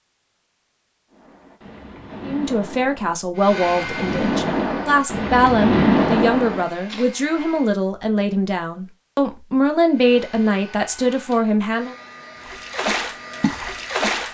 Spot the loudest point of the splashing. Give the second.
6 s.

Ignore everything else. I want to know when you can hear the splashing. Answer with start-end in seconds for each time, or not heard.
1.1-7.1, 12.4-14.3.